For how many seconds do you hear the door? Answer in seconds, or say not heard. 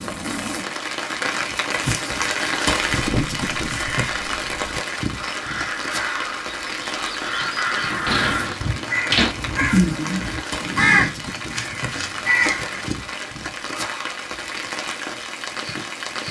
2 s.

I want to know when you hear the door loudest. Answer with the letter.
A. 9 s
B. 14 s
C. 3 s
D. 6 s
A.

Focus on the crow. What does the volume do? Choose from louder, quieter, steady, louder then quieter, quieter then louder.
louder.